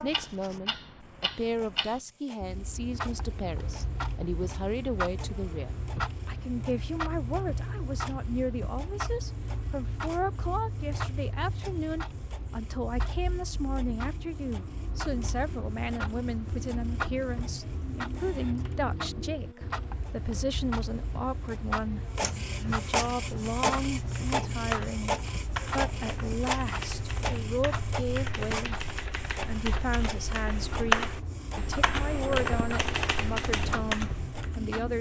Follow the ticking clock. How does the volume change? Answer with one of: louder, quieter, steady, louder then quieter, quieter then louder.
steady.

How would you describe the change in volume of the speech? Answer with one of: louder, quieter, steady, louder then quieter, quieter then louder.
steady.